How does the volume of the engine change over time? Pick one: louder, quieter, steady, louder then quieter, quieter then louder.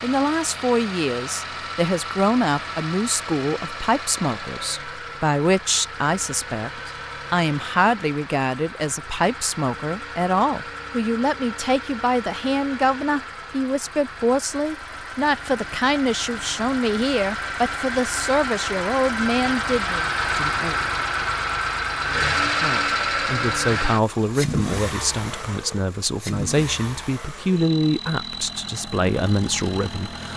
louder then quieter.